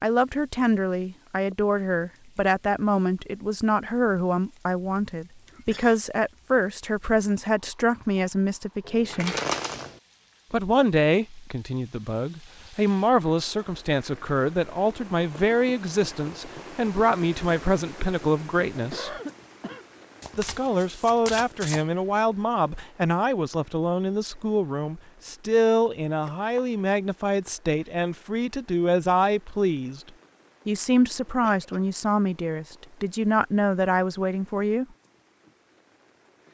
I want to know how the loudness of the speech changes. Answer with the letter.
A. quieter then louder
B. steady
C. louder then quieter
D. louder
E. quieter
B.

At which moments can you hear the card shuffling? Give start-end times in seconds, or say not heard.
8.8-10.0, 20.2-21.9, 26.1-26.8.